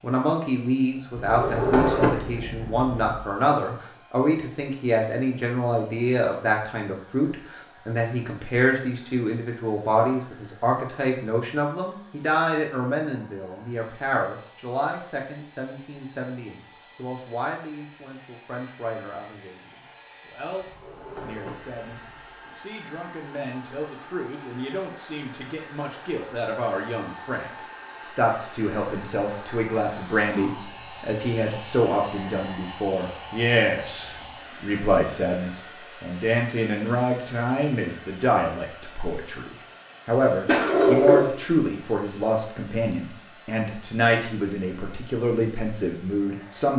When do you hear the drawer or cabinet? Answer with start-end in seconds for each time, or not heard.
1.1-3.1, 20.6-22.3, 40.5-41.3.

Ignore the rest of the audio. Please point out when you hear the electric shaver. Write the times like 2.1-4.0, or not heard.
not heard.